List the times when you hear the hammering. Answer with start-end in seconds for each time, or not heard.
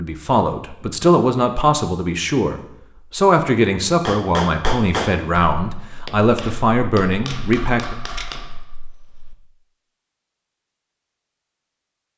4.0-9.3.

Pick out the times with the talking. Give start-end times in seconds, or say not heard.
0.0-8.0.